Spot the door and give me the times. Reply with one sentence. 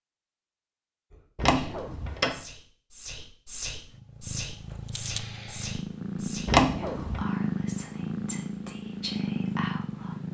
The door can be heard from 1.4 to 2.4 s and from 6.5 to 7.2 s.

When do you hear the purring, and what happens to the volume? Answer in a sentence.
You can hear the purring from 3.9 to 10.2 s, getting louder.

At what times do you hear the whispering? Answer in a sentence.
You can hear the whispering from 1.1 to 10.2 s.